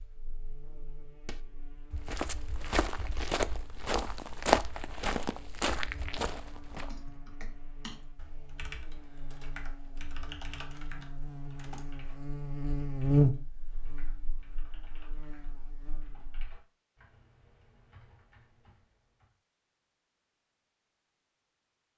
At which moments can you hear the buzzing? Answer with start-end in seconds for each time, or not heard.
0.0-16.6.